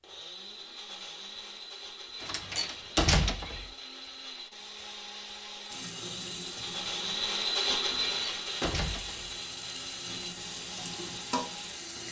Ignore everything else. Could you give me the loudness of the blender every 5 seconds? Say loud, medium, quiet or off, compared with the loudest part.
medium, loud, medium.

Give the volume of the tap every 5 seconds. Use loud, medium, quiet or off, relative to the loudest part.
off, loud, loud.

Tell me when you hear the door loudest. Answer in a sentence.
The volume of the door peaks at 3 seconds.